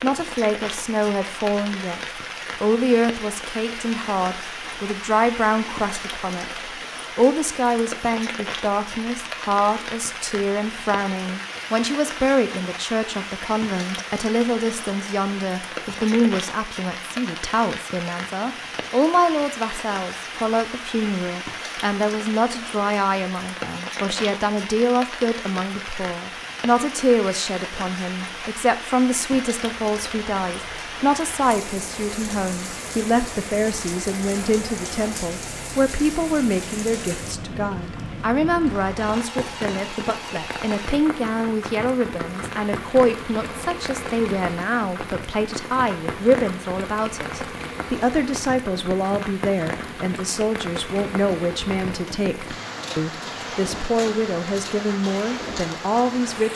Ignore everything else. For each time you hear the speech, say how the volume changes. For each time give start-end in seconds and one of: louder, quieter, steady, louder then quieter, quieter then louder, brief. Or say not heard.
0.0-2.0 brief
2.6-56.5 steady.